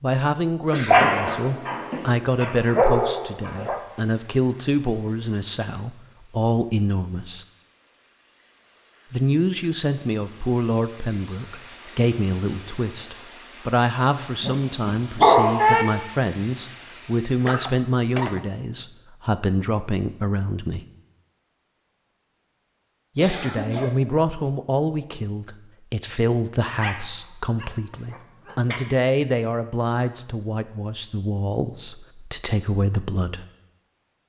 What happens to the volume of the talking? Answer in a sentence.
The volume of the talking stays about the same.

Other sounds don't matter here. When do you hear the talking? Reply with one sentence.
The talking can be heard from 0.0 to 7.5 s, from 9.1 to 20.9 s and from 23.1 to 33.5 s.